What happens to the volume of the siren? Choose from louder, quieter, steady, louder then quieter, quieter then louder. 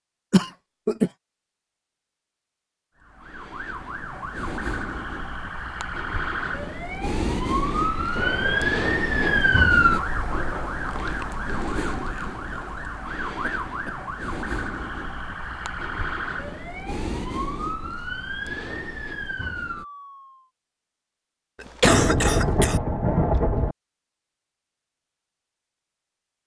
louder then quieter.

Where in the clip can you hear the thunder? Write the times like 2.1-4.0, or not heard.
7.7-9.7, 21.8-23.8.